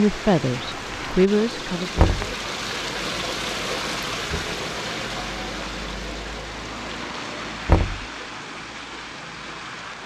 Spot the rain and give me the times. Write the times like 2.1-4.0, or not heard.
0.0-10.0.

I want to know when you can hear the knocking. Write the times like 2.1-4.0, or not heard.
1.9-2.4, 7.7-8.1.